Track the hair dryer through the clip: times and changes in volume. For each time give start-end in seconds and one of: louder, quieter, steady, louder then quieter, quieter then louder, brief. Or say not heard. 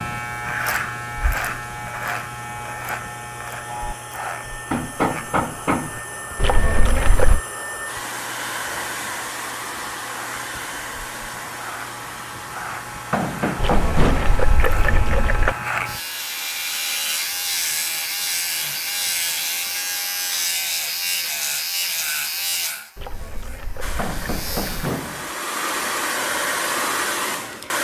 0.1-20.5 louder then quieter
23.8-27.8 louder.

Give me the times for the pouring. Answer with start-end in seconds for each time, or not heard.
6.3-7.4, 13.6-15.6, 22.9-24.8.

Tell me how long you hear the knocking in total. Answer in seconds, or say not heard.
4 s.